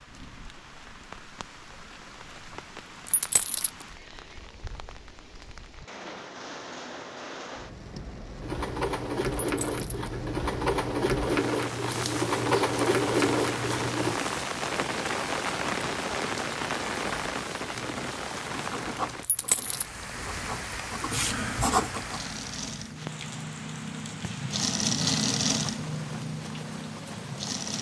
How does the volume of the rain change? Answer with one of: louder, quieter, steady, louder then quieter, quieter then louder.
louder then quieter.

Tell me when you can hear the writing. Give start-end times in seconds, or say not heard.
17.0-22.2.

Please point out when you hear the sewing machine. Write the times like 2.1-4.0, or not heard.
8.4-14.2, 22.0-27.7.